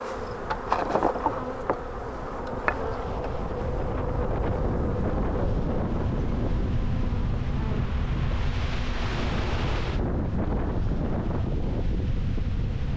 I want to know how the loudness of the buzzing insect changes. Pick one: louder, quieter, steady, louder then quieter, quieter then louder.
quieter.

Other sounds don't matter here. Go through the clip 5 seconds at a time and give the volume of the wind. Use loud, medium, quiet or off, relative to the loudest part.
medium, loud, loud.